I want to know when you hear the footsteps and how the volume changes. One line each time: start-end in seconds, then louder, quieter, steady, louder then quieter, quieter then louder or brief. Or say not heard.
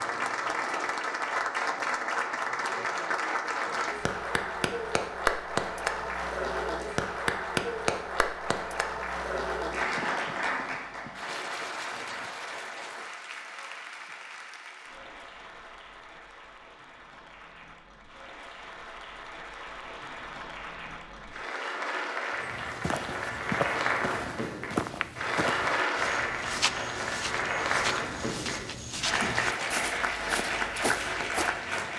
22.4-31.6 steady.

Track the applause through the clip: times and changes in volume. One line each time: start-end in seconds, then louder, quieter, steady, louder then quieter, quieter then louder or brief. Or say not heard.
0.0-31.9 quieter then louder.